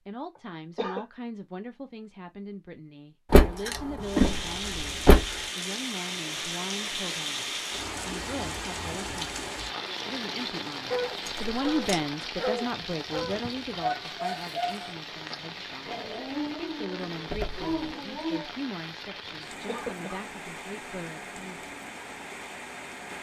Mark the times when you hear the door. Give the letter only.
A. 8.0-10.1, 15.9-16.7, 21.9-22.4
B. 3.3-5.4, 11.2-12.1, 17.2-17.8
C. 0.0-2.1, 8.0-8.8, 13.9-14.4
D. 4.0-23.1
B.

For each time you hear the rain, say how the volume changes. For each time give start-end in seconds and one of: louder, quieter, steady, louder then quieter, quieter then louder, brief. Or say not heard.
4.0-23.1 quieter.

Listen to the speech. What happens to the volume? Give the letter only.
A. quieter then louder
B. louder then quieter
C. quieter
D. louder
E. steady
B.